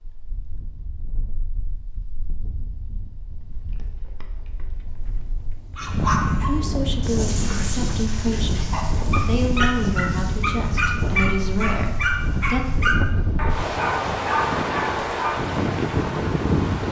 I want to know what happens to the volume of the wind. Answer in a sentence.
The loudness of the wind goes up.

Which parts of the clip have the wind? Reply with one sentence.
The wind can be heard from 0.0 to 16.8 s.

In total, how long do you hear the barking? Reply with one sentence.
You can hear the barking for 10 seconds altogether.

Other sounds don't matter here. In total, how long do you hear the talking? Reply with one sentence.
You can hear the talking for 6 seconds altogether.